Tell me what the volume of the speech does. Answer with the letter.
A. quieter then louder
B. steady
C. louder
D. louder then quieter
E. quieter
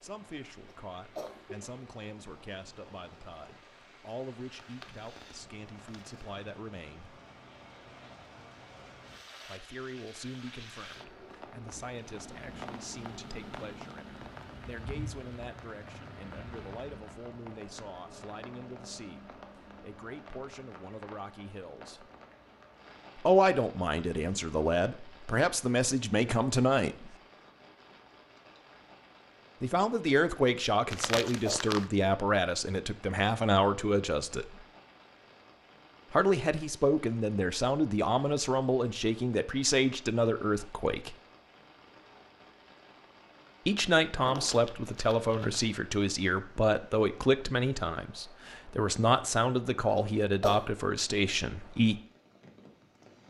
C.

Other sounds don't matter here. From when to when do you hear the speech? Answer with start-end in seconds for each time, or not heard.
0.0-7.2, 9.4-22.1, 23.1-27.1, 29.6-34.6, 36.1-41.1, 43.6-52.0.